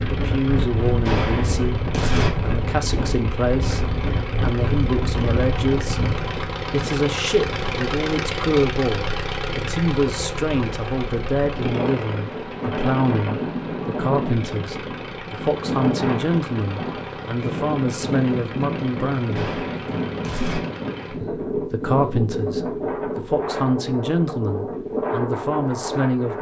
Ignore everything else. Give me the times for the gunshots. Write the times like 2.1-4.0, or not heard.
1.1-2.3, 19.4-20.6.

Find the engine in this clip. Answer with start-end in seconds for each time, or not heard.
0.0-21.2.